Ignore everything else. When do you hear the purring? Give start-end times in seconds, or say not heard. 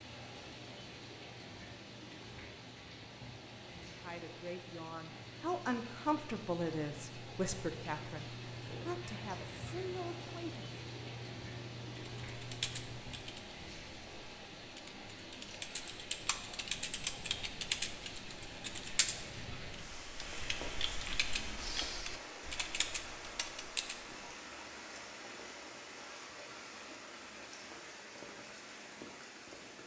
0.0-13.1.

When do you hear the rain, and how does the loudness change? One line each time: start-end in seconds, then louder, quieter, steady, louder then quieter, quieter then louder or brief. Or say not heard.
0.0-29.8 steady.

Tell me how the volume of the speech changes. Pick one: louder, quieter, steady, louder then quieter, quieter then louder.
louder then quieter.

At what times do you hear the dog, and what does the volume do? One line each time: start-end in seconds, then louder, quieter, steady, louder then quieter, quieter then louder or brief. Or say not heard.
not heard.